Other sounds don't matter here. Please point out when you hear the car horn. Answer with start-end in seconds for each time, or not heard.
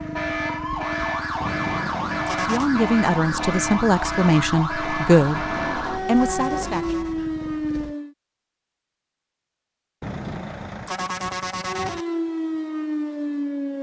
1.4-2.7, 5.3-7.2, 10.0-12.1.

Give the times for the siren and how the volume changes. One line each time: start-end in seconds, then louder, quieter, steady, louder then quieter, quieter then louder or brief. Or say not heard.
0.0-8.2 steady
11.6-13.7 brief.